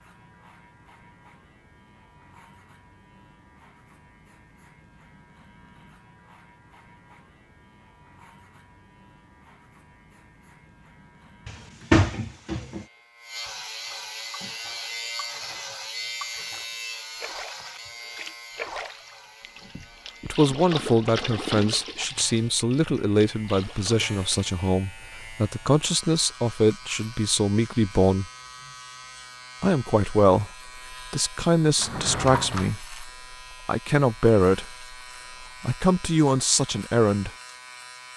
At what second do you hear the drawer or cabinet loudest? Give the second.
12 s.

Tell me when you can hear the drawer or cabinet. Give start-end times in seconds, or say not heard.
11.4-12.8, 31.8-32.7.